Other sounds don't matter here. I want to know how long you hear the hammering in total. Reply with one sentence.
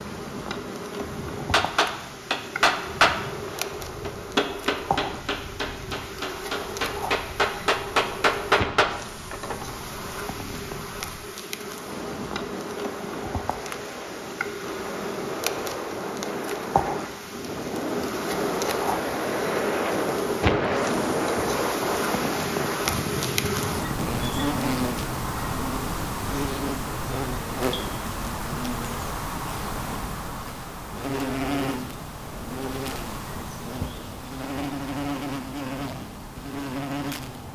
The hammering can be heard for 8 seconds in total.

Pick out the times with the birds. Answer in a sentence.
The birds can't be heard in this clip.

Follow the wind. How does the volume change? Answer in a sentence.
The loudness of the wind goes up, then down.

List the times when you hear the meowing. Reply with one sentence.
The meowing can't be heard in this clip.